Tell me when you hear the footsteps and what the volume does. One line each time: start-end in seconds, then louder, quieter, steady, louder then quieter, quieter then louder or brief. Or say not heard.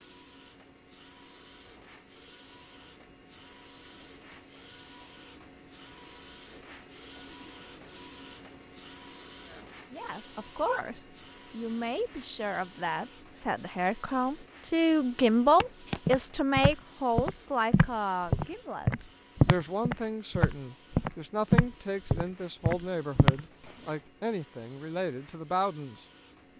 15.6-23.4 louder then quieter.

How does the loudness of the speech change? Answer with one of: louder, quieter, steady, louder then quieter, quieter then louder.
louder then quieter.